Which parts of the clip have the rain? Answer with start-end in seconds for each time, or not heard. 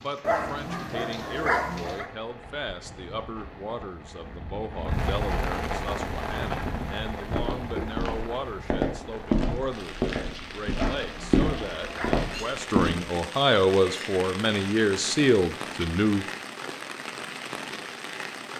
0.0-18.5.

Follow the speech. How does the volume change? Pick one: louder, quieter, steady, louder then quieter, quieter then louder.
louder.